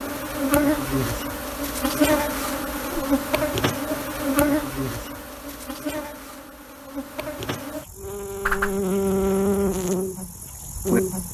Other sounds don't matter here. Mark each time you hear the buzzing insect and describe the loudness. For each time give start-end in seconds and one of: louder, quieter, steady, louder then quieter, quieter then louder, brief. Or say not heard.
0.0-11.2 quieter then louder.